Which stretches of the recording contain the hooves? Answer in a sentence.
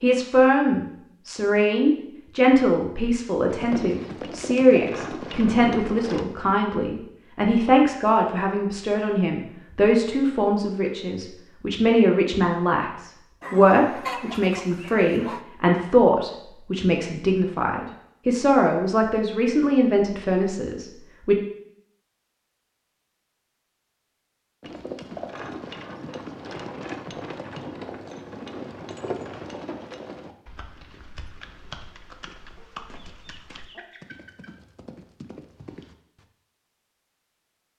The hooves can be heard from 3.5 to 6.2 s and from 24.6 to 36.2 s.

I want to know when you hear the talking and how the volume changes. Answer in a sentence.
You can hear the talking from 0.0 to 21.4 s, at a steady volume.